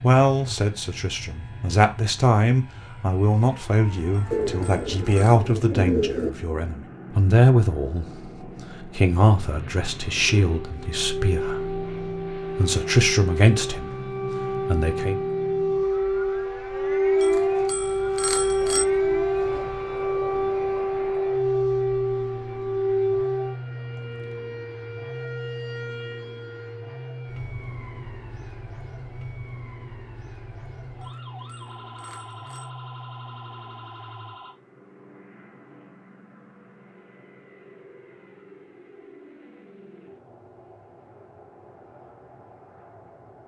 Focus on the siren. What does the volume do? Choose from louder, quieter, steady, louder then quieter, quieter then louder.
louder then quieter.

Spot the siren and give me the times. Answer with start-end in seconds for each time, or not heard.
10.4-34.5.